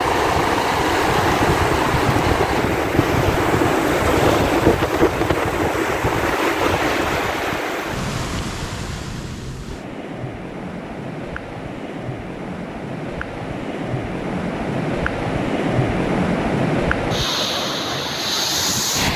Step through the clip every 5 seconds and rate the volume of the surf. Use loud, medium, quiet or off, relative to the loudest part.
loud, loud, medium, loud.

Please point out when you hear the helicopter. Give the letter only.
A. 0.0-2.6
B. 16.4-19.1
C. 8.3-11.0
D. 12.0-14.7
A.